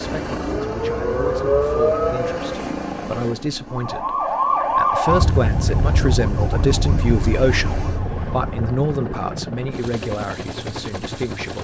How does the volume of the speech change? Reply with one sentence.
The loudness of the speech goes up, then down.